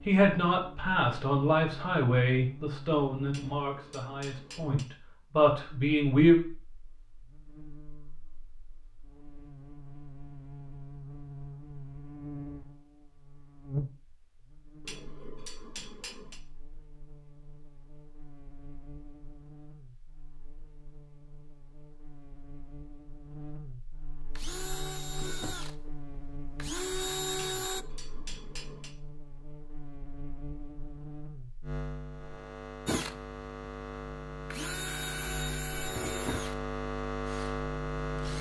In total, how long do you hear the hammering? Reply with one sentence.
The hammering can be heard for 5 seconds in total.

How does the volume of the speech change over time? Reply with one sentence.
The volume of the speech goes down, then up.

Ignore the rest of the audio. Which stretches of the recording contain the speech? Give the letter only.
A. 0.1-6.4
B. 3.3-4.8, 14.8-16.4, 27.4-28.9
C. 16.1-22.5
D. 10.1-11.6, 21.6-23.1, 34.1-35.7
A.